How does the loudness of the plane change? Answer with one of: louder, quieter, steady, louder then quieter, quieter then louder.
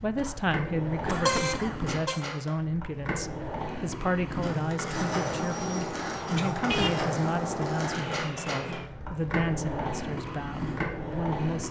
steady.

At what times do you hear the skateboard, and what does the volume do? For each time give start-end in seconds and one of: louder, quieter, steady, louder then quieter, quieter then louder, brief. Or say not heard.
0.0-11.6 steady.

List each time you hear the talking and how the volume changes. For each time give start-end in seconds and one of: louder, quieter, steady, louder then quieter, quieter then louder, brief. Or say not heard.
0.0-11.6 steady.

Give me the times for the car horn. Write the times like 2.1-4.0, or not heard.
1.1-2.2, 6.5-7.0.